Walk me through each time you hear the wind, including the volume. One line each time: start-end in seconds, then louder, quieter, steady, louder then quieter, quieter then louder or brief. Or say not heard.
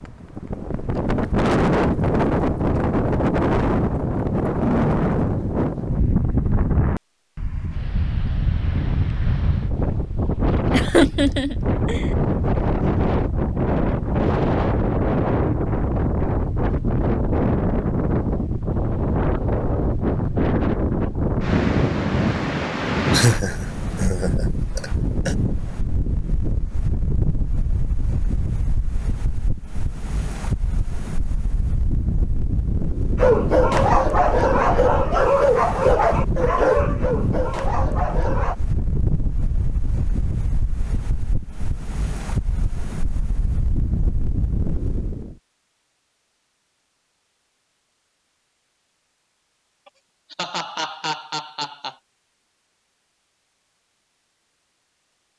0.0-45.4 quieter.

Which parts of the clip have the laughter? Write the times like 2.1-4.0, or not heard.
10.7-12.1, 23.1-25.4, 49.9-52.0.